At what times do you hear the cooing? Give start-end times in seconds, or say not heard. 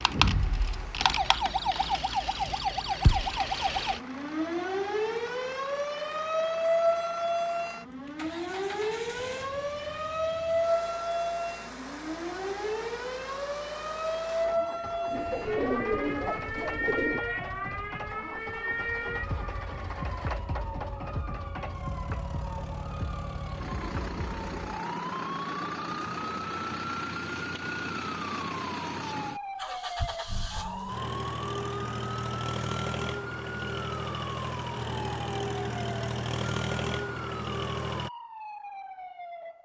15.1-17.2.